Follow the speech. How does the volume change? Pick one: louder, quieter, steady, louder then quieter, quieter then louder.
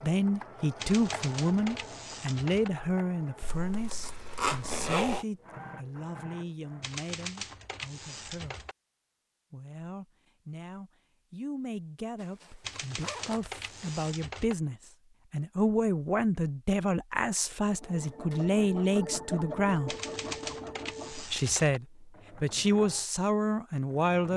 quieter then louder.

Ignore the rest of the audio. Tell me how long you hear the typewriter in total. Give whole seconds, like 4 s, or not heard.
8 s.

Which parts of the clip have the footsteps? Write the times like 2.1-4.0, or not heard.
not heard.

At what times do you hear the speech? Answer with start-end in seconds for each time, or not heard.
0.0-8.7, 9.5-19.9, 21.1-24.3.